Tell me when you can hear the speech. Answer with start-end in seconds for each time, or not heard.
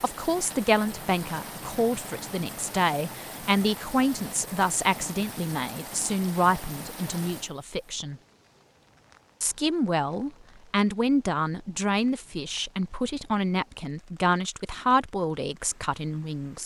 0.0-8.2, 9.4-16.6.